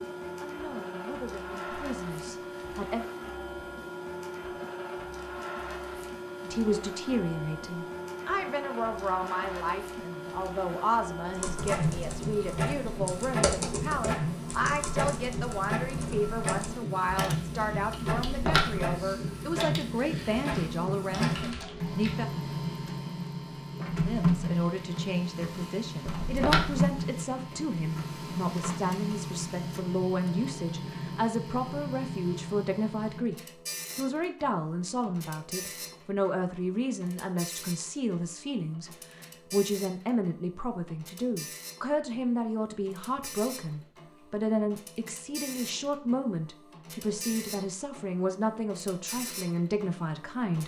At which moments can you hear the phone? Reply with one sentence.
You can hear the phone from 18.2 to 18.9 s and from 26.1 to 26.8 s.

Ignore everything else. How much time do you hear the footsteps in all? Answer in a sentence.
You can't hear the footsteps here.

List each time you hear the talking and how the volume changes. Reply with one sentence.
The talking can be heard briefly from 0.2 to 3.0 s; from 6.4 to 22.2 s, at a steady volume; and from 24.1 to 50.6 s, at a steady volume.